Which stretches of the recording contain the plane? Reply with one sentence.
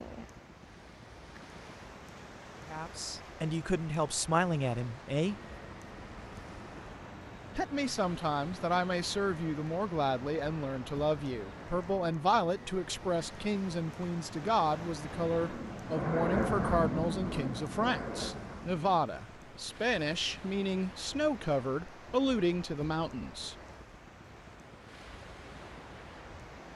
The plane can be heard from 5.2 to 19.0 s.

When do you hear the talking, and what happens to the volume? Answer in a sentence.
The talking can be heard briefly from 2.6 to 5.3 s; and from 7.5 to 23.6 s, at a steady volume.